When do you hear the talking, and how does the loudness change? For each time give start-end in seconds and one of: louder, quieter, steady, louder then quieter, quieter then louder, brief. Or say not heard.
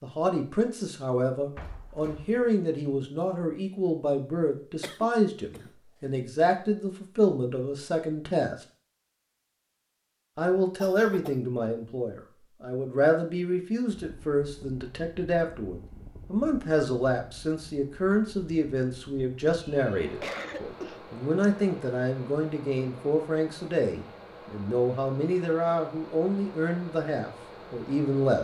0.0-8.6 steady
10.3-28.3 steady.